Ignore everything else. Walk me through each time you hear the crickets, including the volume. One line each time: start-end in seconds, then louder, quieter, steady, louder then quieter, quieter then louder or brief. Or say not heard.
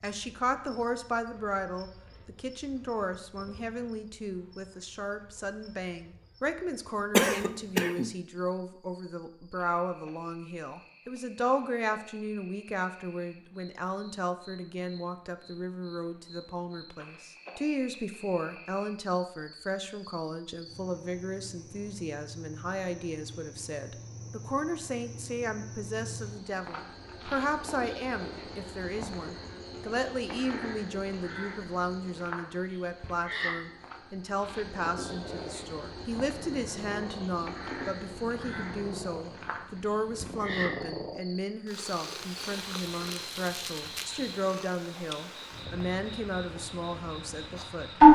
0.0-48.1 louder.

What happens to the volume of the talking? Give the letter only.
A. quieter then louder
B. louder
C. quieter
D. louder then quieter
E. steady
E.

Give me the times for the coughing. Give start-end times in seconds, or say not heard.
7.1-8.1.